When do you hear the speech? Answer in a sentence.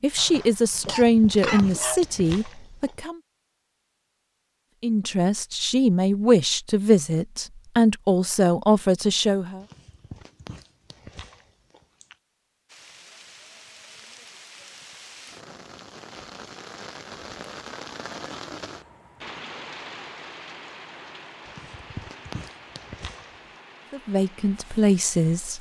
You can hear the speech from 0.0 to 3.2 s, from 4.8 to 9.7 s and from 23.9 to 25.5 s.